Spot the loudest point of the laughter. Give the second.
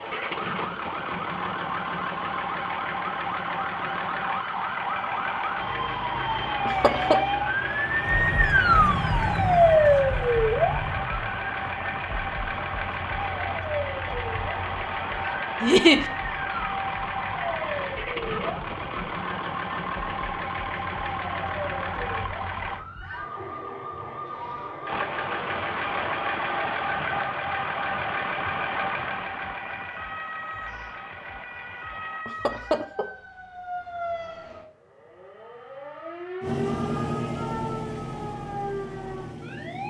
16 s.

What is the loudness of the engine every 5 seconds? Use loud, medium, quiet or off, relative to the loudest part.
loud, loud, loud, loud, loud, loud, quiet, loud.